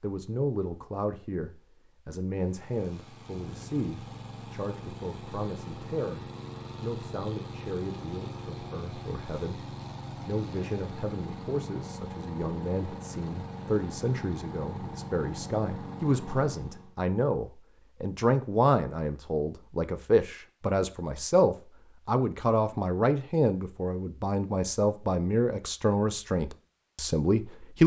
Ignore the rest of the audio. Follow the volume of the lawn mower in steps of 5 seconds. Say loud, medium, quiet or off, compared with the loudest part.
medium, loud, loud, loud, off, off.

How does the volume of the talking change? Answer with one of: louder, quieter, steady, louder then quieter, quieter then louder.
louder.